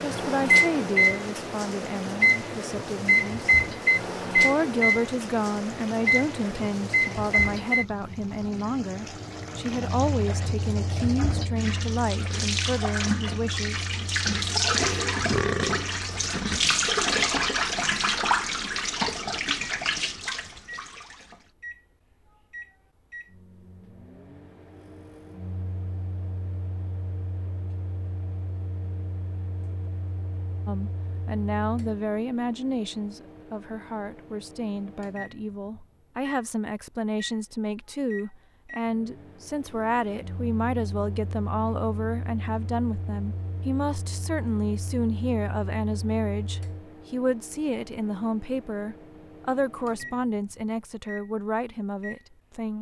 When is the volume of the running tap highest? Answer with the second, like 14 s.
17 s.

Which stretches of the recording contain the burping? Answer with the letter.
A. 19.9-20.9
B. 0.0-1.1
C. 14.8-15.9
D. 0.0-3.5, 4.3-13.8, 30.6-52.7
C.